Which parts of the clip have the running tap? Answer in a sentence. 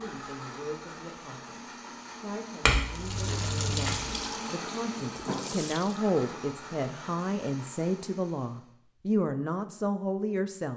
The running tap can be heard from 3.0 to 6.0 s.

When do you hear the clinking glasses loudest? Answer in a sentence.
The loudest moment of the clinking glasses is at 3 seconds.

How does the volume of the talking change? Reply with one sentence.
The volume of the talking goes up.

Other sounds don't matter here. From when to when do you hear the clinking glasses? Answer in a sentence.
You can hear the clinking glasses from 2.6 to 4.2 s.